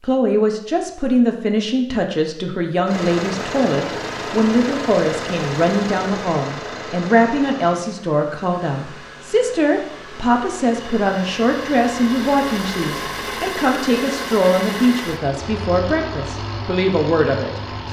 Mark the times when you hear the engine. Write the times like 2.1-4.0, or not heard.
2.9-17.8.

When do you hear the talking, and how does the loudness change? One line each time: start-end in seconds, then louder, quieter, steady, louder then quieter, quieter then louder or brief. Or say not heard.
0.0-17.6 steady.